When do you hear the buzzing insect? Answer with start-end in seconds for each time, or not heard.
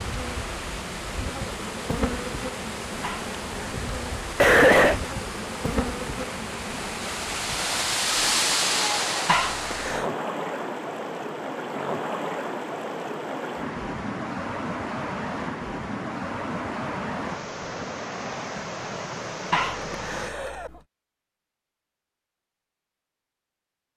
0.0-8.6.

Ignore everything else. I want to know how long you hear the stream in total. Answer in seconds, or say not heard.
20 s.